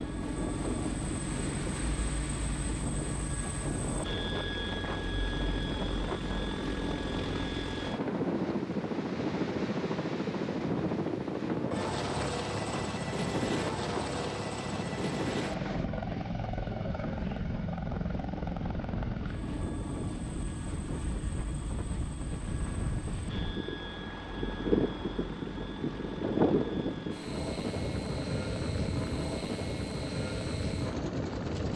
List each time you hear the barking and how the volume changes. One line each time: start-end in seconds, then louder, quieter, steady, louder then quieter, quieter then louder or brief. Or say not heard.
not heard.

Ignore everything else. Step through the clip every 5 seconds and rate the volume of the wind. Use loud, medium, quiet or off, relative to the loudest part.
medium, medium, medium, medium, loud, loud, loud.